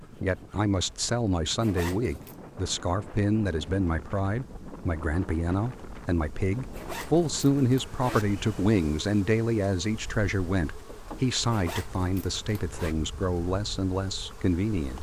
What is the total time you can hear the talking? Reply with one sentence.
The talking can be heard for 15 seconds in total.